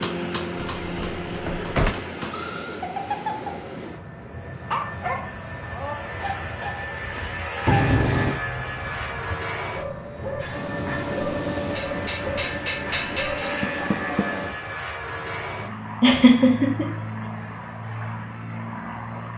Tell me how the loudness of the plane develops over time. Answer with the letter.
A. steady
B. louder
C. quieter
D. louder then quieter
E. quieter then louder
A.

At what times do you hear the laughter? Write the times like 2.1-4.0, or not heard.
16.0-16.9.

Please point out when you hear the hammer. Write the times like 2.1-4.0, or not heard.
0.0-2.5, 10.5-14.6.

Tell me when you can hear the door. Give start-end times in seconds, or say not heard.
0.6-1.9, 7.7-8.4, 13.6-14.2.